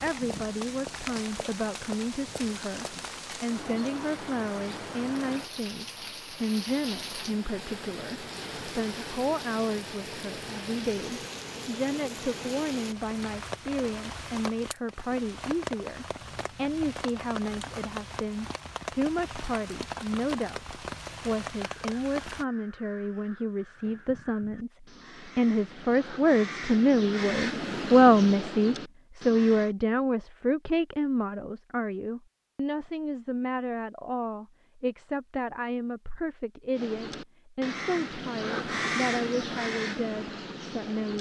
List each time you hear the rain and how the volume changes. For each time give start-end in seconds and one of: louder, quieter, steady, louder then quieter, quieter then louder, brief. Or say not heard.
0.0-22.4 steady.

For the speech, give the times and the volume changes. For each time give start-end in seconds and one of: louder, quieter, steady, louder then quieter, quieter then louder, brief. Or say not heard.
0.0-41.1 louder then quieter.